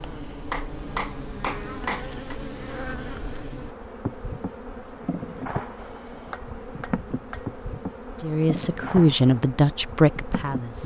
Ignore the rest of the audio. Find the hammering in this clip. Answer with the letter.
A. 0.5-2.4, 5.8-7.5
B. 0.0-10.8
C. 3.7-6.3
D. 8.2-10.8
A.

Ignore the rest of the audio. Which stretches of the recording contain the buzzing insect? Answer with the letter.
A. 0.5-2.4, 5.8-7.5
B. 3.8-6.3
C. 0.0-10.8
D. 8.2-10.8
C.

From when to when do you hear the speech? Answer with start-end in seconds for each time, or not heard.
8.2-10.8.